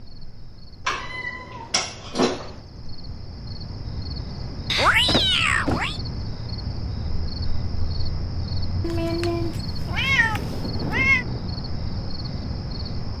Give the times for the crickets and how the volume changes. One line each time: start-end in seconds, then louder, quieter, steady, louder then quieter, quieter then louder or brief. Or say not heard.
0.0-13.1 louder.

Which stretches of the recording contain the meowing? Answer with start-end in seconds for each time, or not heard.
0.8-2.5, 4.7-6.0, 8.8-11.2.